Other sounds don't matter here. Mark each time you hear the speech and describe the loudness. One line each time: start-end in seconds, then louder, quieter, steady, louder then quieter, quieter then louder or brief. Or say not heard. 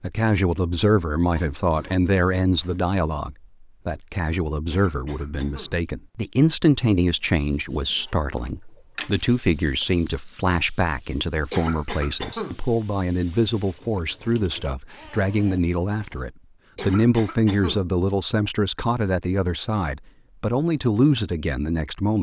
0.0-22.1 steady.